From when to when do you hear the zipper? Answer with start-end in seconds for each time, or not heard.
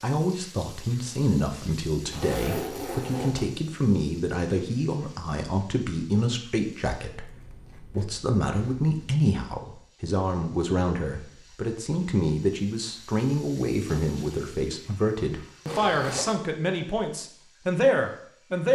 2.1-3.5, 7.1-8.9, 15.7-16.4.